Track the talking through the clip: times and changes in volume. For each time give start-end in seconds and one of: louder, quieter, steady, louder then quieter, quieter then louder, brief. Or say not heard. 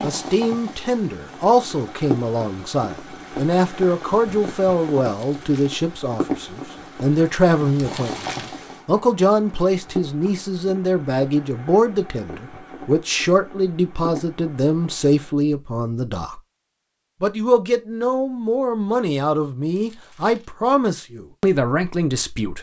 0.0-16.4 steady
17.2-22.5 steady.